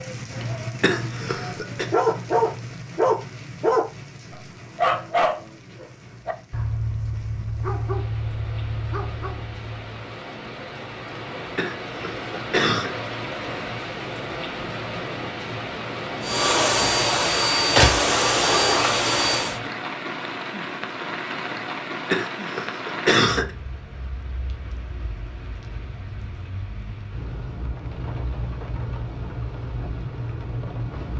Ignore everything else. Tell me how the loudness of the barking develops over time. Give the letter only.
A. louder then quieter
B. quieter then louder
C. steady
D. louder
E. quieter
E.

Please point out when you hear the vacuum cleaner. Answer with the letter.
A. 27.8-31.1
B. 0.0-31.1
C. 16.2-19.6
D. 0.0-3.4
C.